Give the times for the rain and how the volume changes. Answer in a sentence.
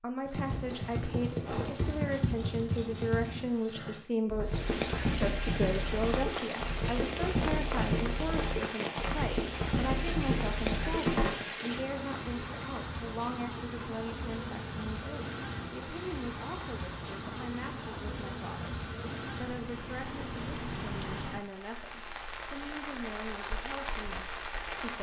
The rain can be heard from 4.5 to 24.9 s, at a steady volume.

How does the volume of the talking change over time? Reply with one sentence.
The loudness of the talking goes down.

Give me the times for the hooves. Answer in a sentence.
The hooves can be heard from 0.2 to 11.4 s.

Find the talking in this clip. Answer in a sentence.
You can hear the talking from 0.0 to 24.9 s.